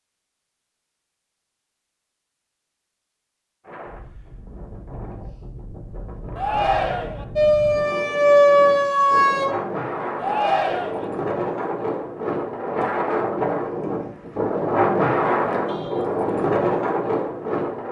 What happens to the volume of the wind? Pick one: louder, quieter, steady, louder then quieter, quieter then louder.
louder.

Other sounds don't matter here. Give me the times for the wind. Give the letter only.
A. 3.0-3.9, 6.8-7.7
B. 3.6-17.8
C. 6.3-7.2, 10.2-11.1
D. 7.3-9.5
B.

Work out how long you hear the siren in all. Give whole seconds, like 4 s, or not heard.
2 s.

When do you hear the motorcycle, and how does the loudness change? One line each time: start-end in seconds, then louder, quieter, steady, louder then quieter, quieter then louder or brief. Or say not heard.
not heard.